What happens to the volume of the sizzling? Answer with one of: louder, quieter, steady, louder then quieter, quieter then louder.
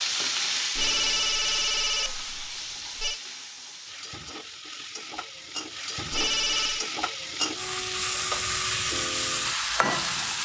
quieter then louder.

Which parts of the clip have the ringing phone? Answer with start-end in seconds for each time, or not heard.
0.8-3.2, 6.1-6.9.